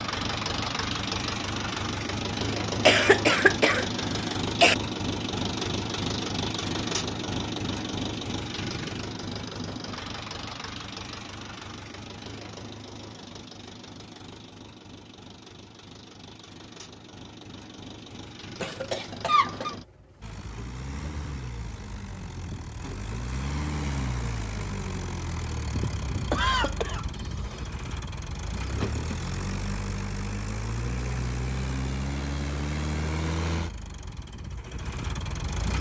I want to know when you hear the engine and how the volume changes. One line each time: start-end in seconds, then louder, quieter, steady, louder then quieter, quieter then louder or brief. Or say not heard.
0.0-35.7 quieter then louder.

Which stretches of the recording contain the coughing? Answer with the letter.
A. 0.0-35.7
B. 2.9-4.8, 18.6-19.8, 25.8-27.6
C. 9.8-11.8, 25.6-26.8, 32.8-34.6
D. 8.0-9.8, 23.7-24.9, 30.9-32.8
B.